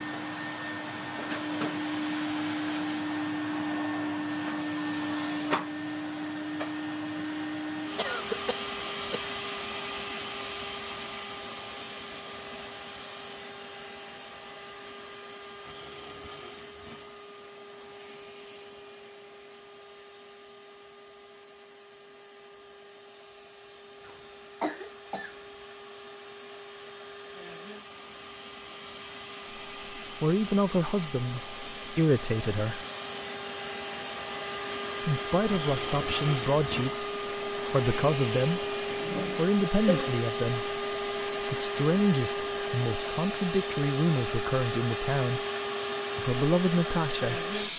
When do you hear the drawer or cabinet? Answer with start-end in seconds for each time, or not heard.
not heard.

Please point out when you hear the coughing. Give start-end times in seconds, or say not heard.
8.0-9.3, 24.1-25.4, 38.9-40.2.